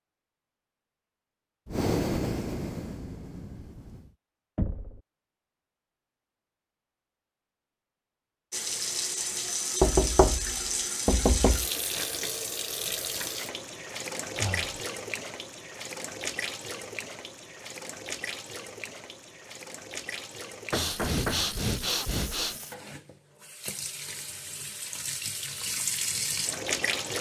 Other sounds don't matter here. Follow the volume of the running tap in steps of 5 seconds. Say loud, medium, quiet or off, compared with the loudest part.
off, loud, loud, medium, medium, loud.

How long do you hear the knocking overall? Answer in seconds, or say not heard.
4 s.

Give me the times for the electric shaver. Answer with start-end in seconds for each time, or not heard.
not heard.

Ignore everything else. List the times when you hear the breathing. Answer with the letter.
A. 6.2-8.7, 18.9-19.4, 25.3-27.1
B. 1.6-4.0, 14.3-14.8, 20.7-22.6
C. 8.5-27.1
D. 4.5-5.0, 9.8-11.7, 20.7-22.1
B.